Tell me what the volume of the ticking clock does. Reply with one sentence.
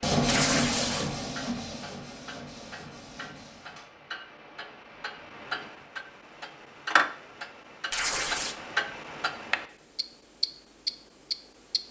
The volume of the ticking clock goes up.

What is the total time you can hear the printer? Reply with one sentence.
You can hear the printer for 4 seconds altogether.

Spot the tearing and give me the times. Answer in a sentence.
The tearing can be heard from 0.2 to 1.2 s and from 7.9 to 8.6 s.